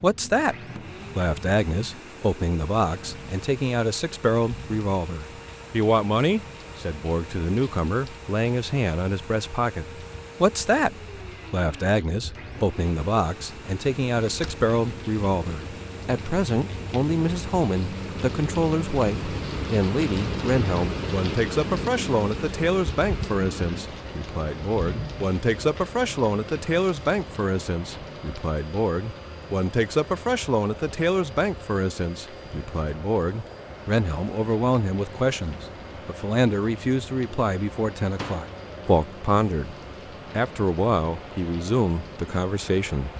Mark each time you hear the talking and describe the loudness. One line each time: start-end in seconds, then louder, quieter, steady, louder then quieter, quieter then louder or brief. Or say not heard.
0.0-0.6 brief
1.1-43.1 steady.